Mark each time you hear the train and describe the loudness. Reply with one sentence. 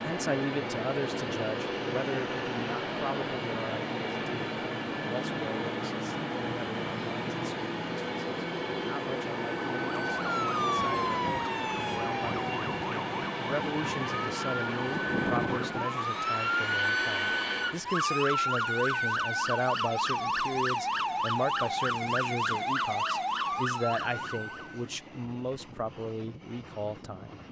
You can hear the train from 0.0 to 27.4 s, getting quieter.